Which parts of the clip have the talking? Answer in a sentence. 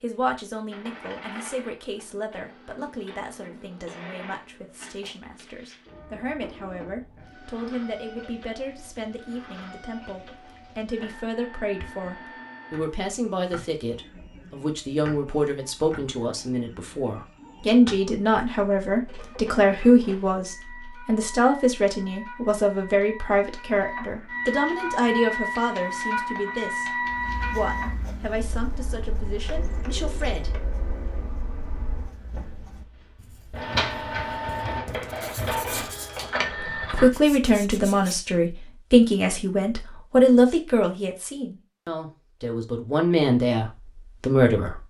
The talking can be heard from 0.0 to 30.6 s and from 36.9 to 44.8 s.